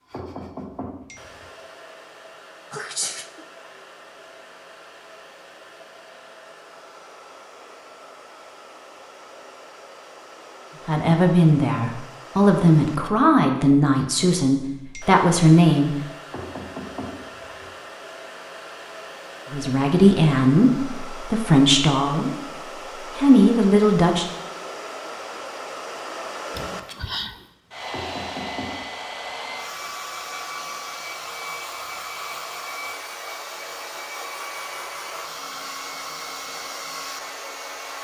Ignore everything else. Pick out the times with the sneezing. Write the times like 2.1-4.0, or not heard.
2.7-3.5, 26.5-27.4.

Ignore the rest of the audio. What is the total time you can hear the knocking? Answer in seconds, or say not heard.
4 s.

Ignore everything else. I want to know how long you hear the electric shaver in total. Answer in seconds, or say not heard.
not heard.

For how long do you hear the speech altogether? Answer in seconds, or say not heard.
10 s.